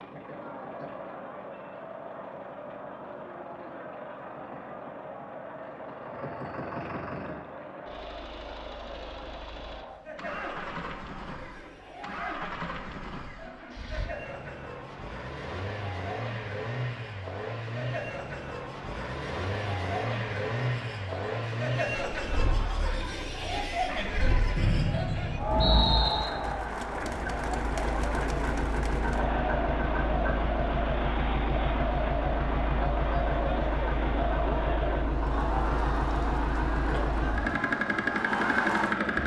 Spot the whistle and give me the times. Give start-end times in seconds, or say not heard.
24.6-26.2.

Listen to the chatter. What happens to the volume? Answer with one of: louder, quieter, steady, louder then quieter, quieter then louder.
louder.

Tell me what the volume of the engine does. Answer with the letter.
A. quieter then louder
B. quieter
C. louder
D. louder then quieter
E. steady
C.